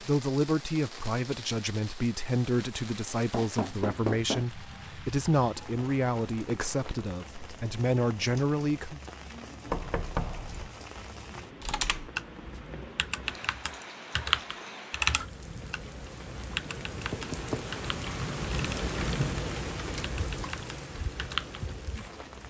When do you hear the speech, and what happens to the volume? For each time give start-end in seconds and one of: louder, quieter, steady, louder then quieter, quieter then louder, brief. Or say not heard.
0.0-9.0 steady.